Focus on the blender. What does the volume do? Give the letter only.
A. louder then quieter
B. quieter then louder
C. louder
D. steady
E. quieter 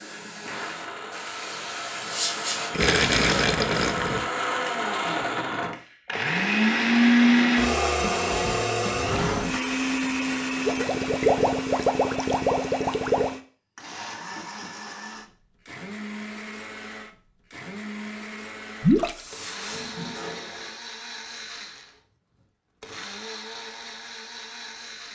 A.